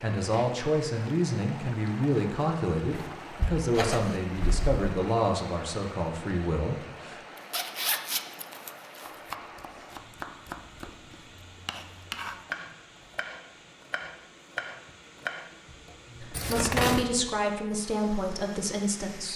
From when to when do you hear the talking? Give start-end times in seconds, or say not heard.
0.0-7.2, 16.2-19.3.